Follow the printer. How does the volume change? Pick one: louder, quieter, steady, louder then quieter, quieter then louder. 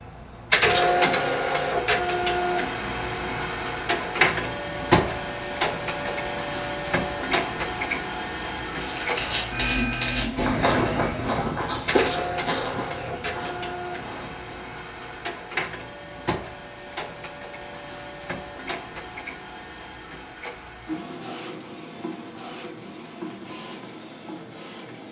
quieter.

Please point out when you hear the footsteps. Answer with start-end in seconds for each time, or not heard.
8.7-14.7.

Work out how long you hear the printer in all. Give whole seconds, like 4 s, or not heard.
25 s.